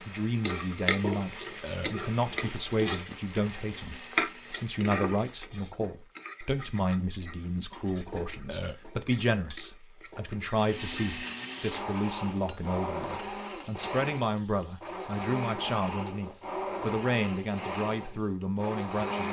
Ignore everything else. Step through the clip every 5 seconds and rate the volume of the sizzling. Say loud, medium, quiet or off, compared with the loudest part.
loud, medium, quiet, off.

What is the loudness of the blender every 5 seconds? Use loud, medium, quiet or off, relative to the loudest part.
quiet, off, loud, loud.